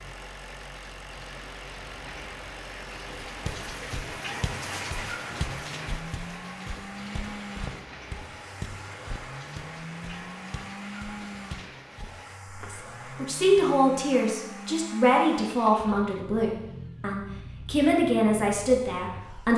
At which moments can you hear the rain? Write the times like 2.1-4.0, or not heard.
0.0-12.5.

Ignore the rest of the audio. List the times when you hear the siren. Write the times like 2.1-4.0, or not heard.
not heard.